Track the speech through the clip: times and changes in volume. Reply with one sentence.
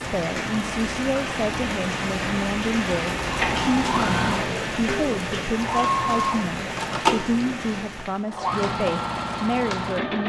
The speech can be heard from 0.0 to 10.2 s, at a steady volume.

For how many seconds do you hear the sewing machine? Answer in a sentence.
The sewing machine can be heard for 7 seconds in total.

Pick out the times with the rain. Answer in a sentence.
The rain can be heard from 0.0 to 8.3 s.